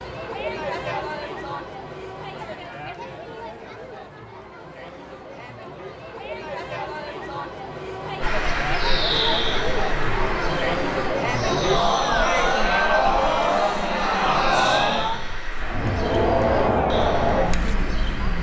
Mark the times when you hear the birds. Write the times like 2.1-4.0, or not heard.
8.2-18.3.